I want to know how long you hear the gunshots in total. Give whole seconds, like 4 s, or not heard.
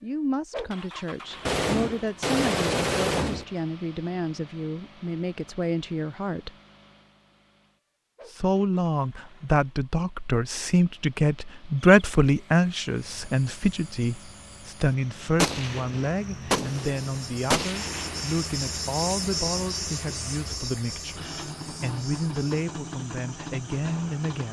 5 s.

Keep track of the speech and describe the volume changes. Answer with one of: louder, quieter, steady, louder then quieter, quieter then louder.
louder then quieter.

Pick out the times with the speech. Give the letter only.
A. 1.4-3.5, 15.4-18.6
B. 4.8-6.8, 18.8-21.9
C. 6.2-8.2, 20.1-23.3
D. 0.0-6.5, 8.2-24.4
D.